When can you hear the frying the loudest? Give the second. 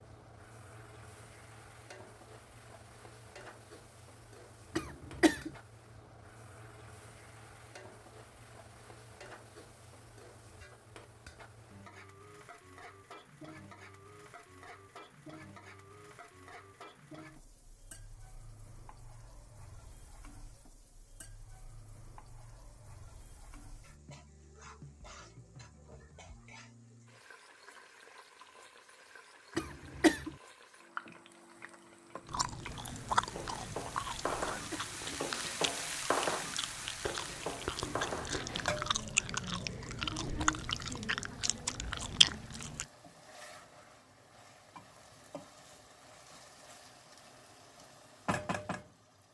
36 s.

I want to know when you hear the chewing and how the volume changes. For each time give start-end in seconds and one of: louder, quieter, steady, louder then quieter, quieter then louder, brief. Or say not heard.
32.2-42.9 quieter then louder.